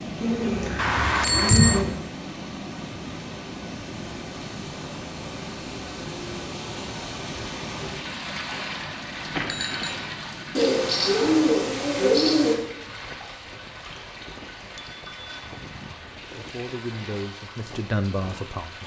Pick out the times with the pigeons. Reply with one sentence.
The pigeons can be heard from 0.2 to 1.9 s and from 10.6 to 12.6 s.